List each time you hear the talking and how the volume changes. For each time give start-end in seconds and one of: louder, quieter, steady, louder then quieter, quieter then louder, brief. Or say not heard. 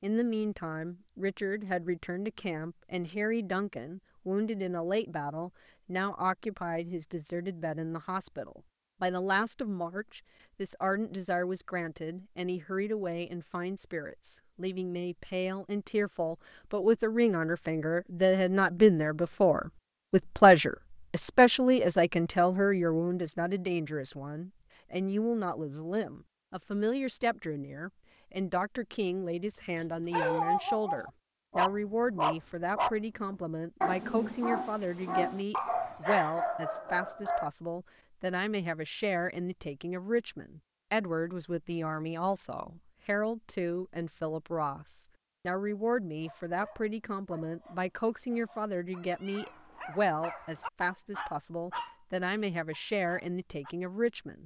0.0-54.4 louder then quieter.